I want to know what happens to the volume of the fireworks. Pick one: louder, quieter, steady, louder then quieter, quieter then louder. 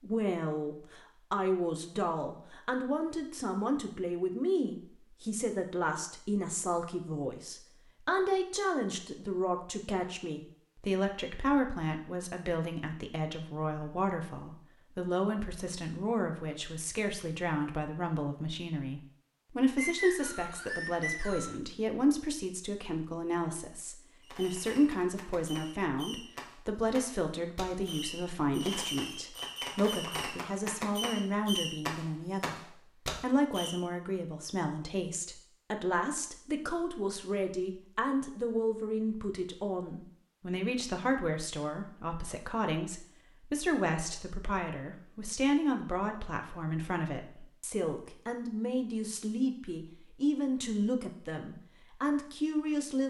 louder.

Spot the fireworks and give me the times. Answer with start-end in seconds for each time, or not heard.
24.2-33.7.